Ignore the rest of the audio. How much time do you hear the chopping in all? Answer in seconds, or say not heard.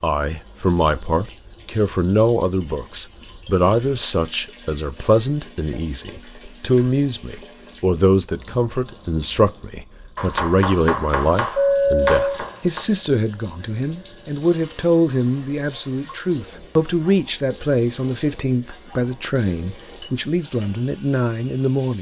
3 s.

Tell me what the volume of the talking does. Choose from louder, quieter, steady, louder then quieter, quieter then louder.
steady.